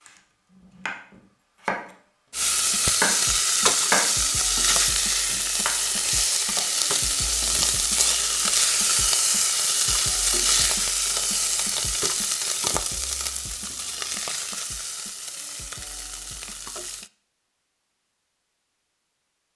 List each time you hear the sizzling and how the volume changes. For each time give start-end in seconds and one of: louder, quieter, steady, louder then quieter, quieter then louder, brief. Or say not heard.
2.3-17.1 quieter.